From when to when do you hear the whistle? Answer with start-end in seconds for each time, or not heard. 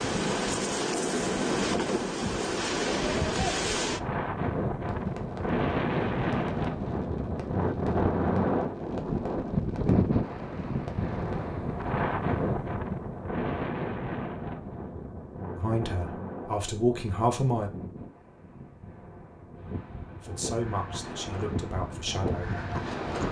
not heard.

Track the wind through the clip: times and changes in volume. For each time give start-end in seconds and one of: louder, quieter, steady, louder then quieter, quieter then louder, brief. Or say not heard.
0.0-23.2 quieter.